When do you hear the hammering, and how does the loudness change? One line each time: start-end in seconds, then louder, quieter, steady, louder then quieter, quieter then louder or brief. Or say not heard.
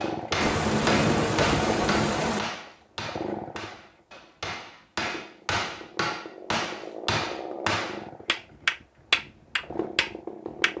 0.0-10.7 quieter then louder.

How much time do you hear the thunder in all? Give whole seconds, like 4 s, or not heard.
2 s.